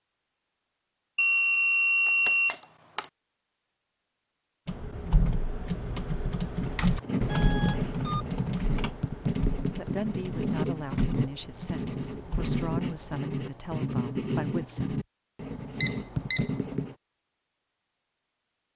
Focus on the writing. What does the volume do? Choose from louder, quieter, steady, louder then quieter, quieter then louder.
steady.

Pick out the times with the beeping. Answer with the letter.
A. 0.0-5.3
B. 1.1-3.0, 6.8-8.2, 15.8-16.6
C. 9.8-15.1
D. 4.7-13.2
B.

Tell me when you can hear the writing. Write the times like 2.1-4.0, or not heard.
6.6-16.9.